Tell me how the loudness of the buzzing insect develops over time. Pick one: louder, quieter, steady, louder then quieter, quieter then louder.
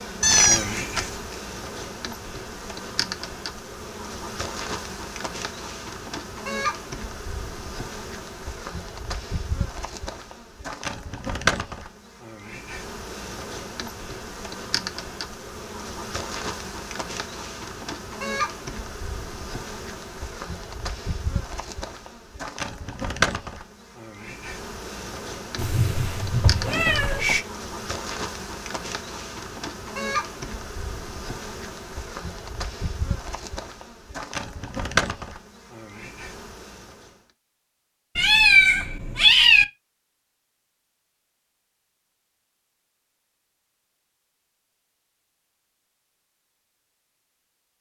steady.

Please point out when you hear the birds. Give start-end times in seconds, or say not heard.
not heard.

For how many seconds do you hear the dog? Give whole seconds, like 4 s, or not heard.
not heard.